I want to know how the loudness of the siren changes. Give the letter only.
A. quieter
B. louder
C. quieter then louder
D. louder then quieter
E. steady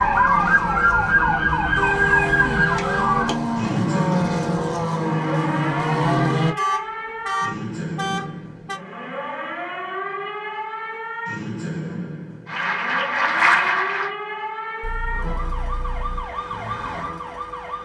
A.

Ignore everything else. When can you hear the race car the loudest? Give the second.
6 s.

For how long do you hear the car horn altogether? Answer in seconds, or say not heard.
5 s.